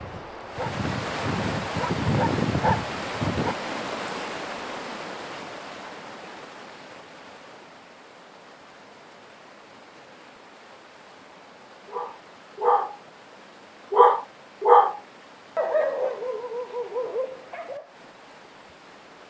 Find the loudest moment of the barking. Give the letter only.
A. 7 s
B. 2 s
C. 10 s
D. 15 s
D.